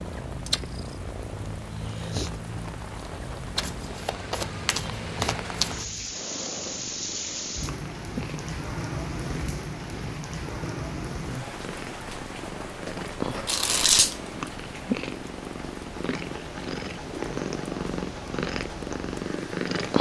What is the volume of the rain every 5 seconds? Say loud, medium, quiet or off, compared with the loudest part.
medium, loud, loud, medium.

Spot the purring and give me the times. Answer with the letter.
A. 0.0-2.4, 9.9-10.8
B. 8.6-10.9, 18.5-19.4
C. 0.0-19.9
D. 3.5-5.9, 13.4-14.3
C.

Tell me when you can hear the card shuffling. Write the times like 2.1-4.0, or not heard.
3.5-5.9, 13.4-14.3.